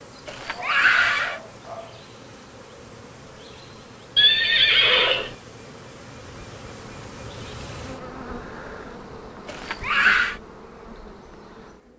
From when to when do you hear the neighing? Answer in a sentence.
The neighing can be heard from 0.2 to 1.4 s, from 4.2 to 5.3 s and from 9.4 to 10.3 s.